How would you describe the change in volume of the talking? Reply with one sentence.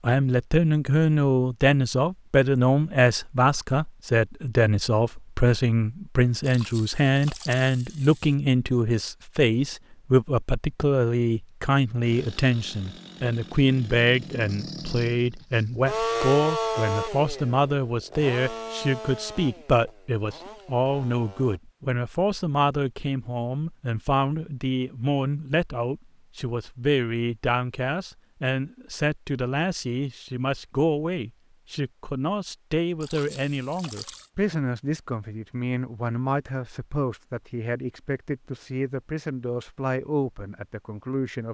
The volume of the talking goes down.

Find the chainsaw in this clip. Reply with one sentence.
You can hear the chainsaw from 12.0 to 21.6 s.